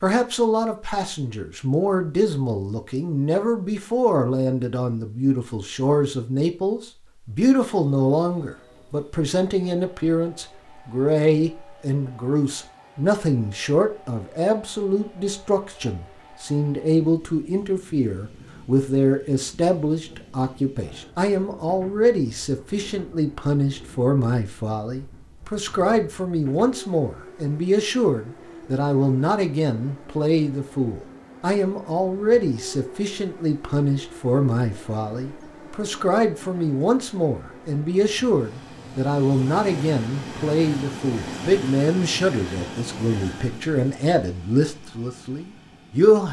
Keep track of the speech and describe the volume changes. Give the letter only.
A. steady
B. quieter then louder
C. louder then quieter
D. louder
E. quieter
A.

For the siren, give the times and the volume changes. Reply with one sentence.
The siren can't be heard in this clip.